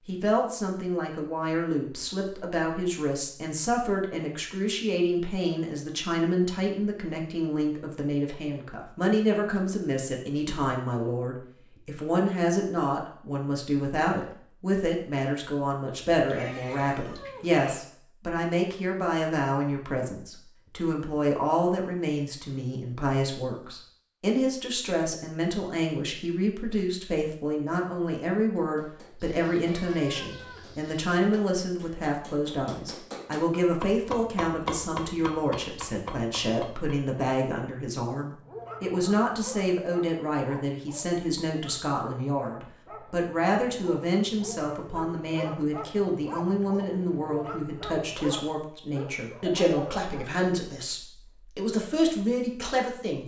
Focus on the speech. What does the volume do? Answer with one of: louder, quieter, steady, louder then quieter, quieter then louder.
steady.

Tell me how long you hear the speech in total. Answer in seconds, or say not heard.
53 s.